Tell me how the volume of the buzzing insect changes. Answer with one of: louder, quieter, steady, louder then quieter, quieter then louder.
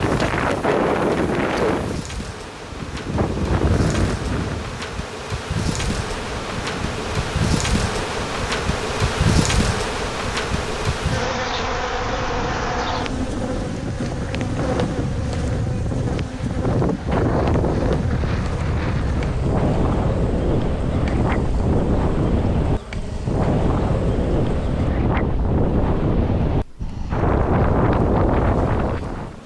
louder then quieter.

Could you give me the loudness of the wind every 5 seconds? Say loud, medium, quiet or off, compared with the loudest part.
loud, quiet, medium, loud, loud, loud.